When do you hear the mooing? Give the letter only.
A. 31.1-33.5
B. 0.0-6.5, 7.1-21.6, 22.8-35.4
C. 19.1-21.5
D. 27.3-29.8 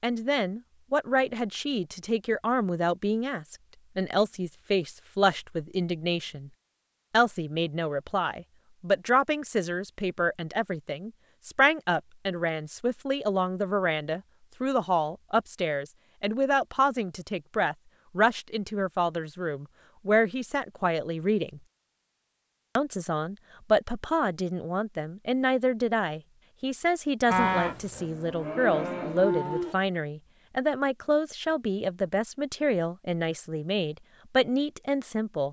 D.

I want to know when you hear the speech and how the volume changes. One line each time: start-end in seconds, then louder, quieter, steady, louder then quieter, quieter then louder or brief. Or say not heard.
0.0-6.5 steady
7.1-21.6 steady
22.8-35.4 steady.